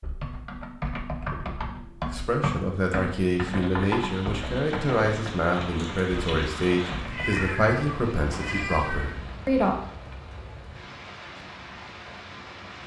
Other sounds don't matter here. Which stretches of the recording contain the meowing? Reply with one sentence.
The meowing can be heard from 7.0 to 9.2 s.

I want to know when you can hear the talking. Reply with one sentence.
The talking can be heard from 2.0 to 9.8 s.